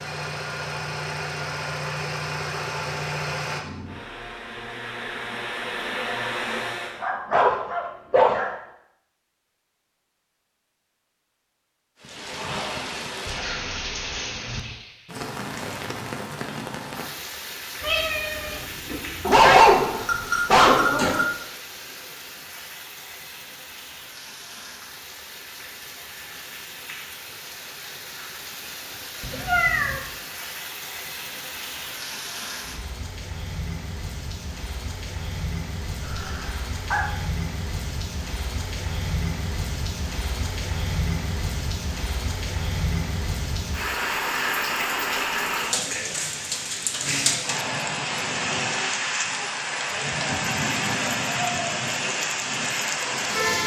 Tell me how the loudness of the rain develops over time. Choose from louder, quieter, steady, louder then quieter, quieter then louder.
quieter then louder.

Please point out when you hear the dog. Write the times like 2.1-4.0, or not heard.
7.0-8.5, 19.2-21.2, 36.0-37.0.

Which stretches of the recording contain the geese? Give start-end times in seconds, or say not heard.
not heard.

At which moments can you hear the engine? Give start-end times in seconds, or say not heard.
0.0-7.1.